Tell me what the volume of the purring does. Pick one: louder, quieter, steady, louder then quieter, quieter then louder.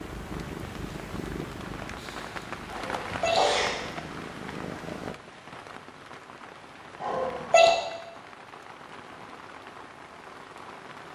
quieter then louder.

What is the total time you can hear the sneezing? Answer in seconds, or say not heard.
2 s.